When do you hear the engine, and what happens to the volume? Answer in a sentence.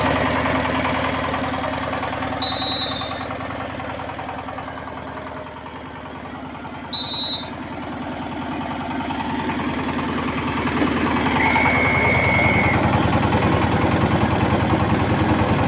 You can hear the engine from 0.0 to 15.6 s, getting quieter then louder.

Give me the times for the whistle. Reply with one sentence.
The whistle can be heard from 2.4 to 3.2 s, from 6.9 to 7.5 s and from 11.3 to 12.8 s.